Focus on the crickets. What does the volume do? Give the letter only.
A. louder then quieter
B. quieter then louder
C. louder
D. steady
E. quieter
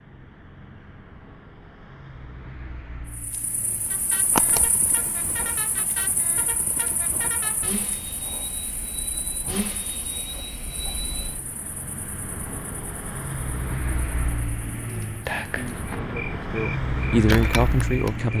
B.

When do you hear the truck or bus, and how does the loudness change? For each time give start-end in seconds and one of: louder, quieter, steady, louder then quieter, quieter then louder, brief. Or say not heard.
0.0-18.3 louder.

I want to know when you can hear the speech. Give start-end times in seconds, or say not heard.
15.4-18.3.